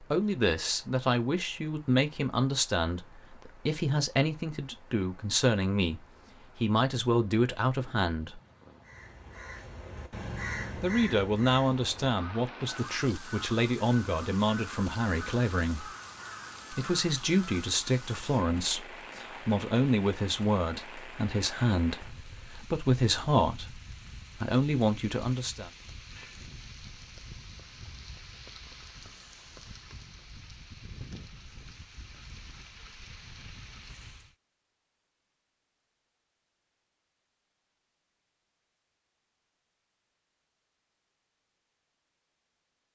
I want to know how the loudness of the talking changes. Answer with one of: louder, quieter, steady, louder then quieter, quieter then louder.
steady.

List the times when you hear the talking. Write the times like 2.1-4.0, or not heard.
0.0-8.4, 10.8-15.9, 16.7-25.7.